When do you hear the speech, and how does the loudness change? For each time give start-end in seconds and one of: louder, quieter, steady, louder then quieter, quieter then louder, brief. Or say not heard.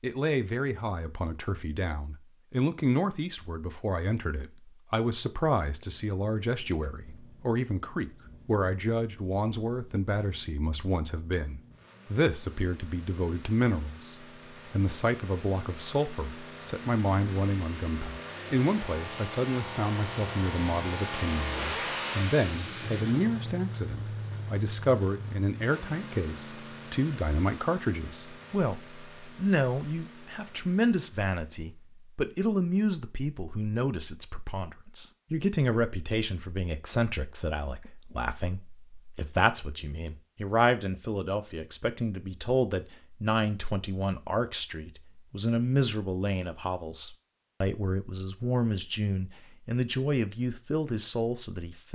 0.0-51.8 steady.